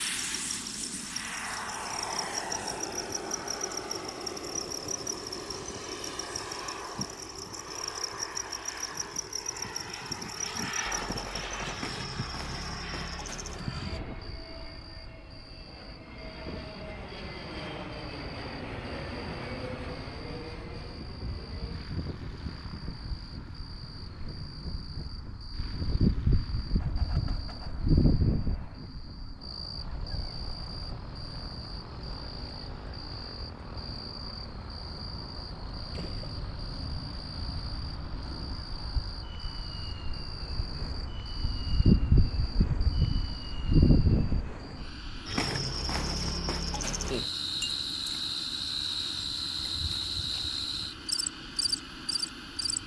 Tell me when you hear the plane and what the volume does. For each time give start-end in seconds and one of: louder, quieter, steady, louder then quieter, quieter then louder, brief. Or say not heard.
0.0-52.8 quieter.